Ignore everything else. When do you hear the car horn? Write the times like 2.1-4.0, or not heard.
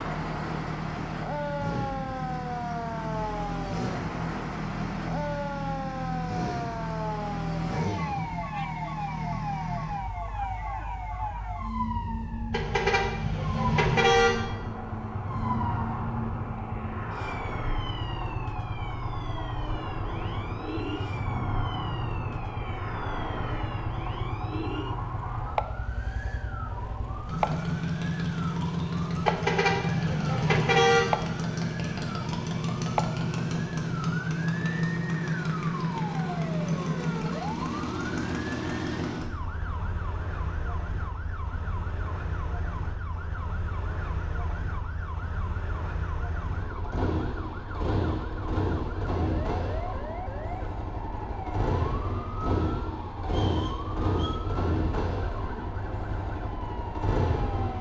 12.5-14.3, 29.2-31.1.